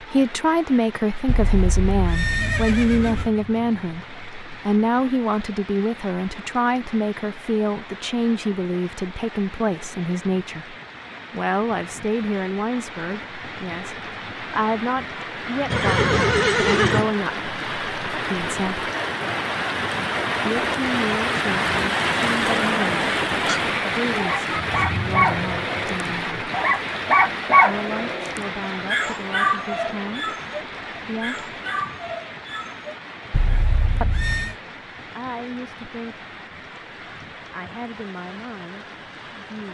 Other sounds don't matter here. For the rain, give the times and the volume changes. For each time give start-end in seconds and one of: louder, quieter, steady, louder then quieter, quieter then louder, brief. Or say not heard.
0.0-39.7 louder then quieter.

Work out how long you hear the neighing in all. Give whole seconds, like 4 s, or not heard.
5 s.